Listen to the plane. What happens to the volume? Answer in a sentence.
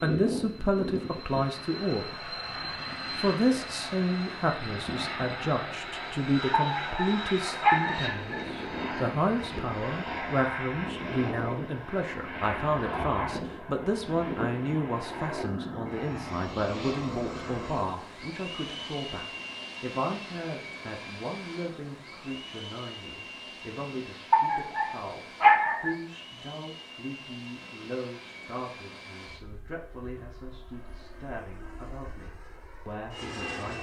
The volume of the plane goes down.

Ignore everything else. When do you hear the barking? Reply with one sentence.
The barking can be heard from 6.5 to 8.4 s and from 24.3 to 25.9 s.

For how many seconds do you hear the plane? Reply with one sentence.
You can hear the plane for 34 seconds altogether.